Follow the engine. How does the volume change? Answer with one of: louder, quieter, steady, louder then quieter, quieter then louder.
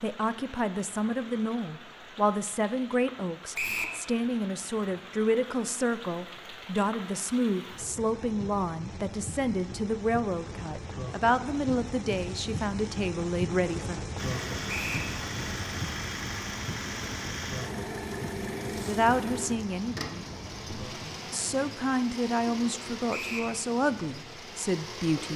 quieter.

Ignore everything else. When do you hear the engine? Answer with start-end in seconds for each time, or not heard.
14.2-25.3.